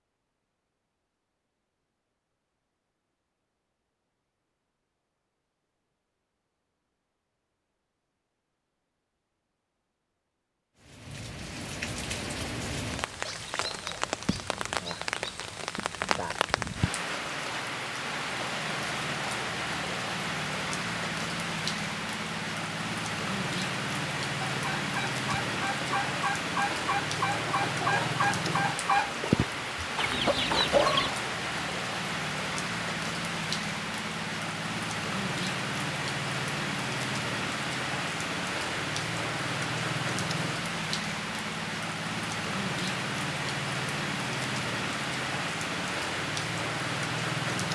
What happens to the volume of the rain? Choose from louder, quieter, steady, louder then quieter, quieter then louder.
steady.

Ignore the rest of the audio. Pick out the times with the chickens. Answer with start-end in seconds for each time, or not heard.
24.4-31.1.